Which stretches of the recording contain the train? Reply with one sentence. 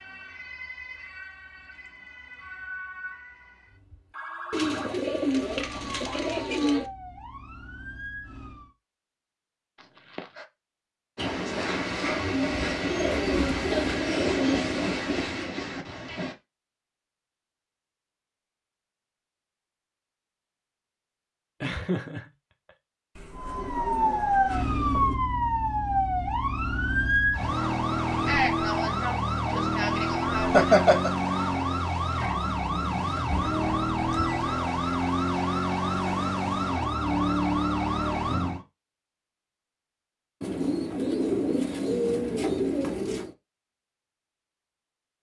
You can hear the train from 11.2 to 16.4 s.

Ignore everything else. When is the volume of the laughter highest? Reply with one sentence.
The loudest moment of the laughter is at 31 seconds.